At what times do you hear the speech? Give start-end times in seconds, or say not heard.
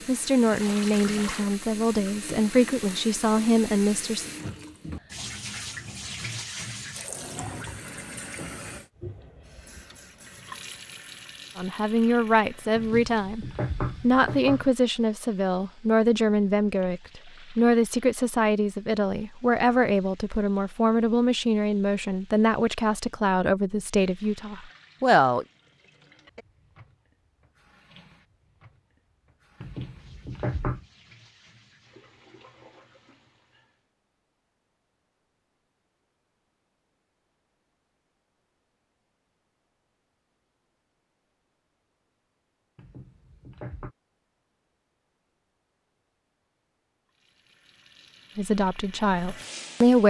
0.1-4.2, 11.6-25.4, 48.4-50.0.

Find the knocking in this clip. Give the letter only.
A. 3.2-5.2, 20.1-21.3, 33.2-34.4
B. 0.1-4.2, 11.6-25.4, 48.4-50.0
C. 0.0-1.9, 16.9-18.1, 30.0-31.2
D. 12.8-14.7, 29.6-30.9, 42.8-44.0
D.